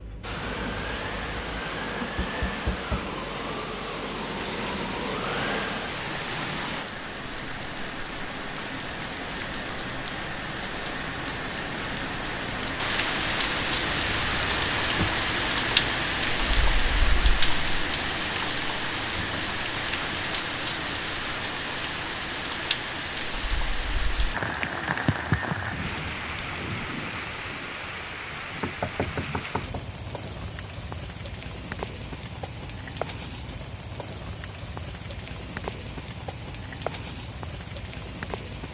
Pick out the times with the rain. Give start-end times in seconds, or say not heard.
0.0-38.6.